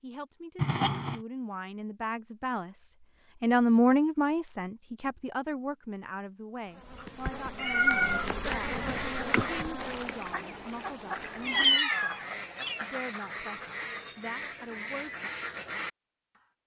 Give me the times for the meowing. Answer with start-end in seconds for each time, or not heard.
0.6-1.2, 7.5-8.3, 11.4-12.8.